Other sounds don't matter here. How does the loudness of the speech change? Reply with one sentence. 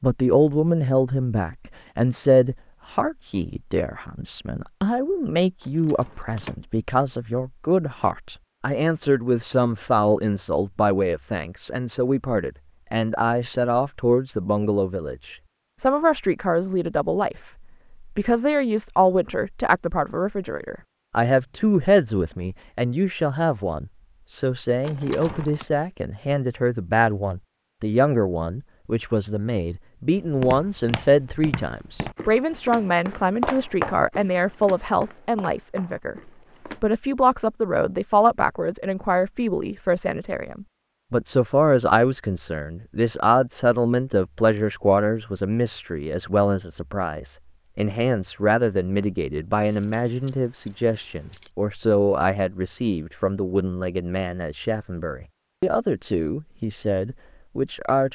The volume of the speech stays about the same.